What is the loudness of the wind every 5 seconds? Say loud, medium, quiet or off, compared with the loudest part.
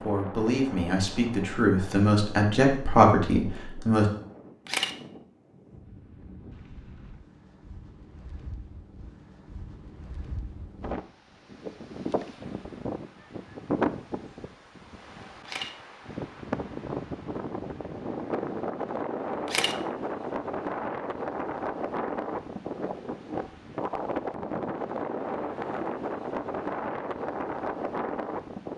medium, quiet, loud, loud, loud, loud.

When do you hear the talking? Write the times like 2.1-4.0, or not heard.
0.0-4.0.